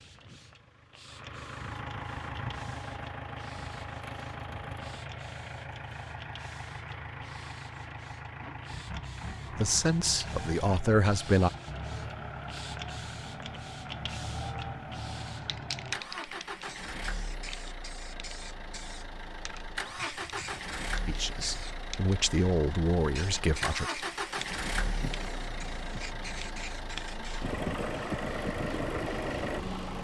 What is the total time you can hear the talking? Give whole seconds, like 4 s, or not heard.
5 s.